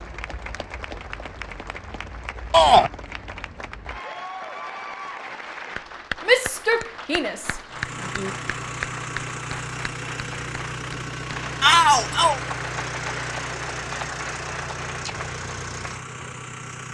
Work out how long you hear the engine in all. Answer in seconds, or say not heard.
9 s.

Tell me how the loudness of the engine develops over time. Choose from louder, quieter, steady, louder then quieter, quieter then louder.
steady.